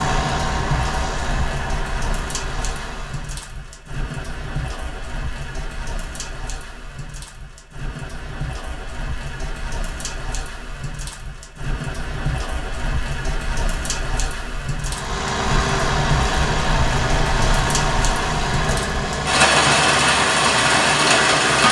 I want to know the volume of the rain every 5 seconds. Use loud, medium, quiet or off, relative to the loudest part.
quiet, quiet, quiet, medium, loud.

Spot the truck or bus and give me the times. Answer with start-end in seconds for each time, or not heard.
0.0-3.4, 14.8-21.6.